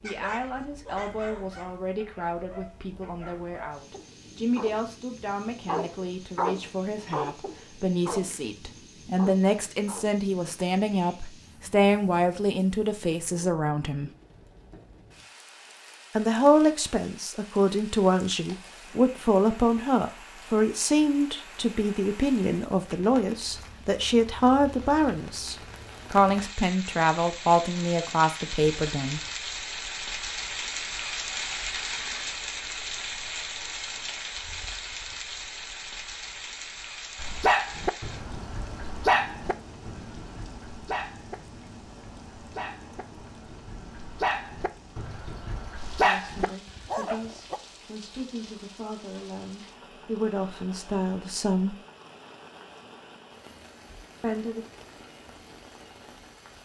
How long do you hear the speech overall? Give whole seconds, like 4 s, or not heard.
33 s.